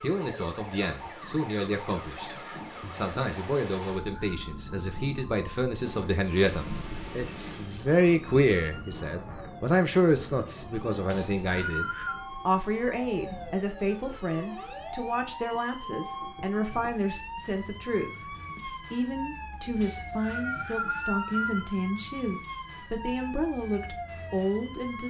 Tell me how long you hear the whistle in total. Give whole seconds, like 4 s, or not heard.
4 s.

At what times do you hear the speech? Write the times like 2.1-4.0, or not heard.
0.0-25.0.